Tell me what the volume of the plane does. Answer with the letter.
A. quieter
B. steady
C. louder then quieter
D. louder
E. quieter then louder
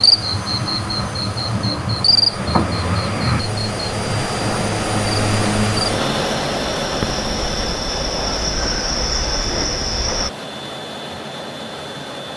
C.